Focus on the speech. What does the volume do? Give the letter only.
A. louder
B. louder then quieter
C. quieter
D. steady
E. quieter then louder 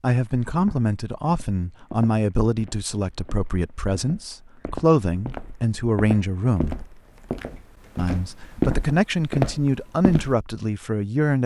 D.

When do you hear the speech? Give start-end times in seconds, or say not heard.
0.0-6.8, 8.0-11.4.